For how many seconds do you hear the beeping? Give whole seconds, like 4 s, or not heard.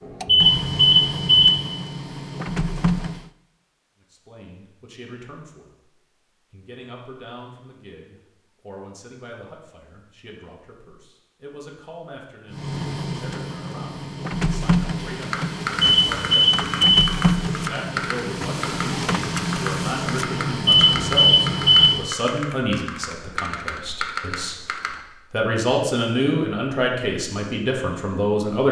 4 s.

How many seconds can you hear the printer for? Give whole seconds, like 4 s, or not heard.
13 s.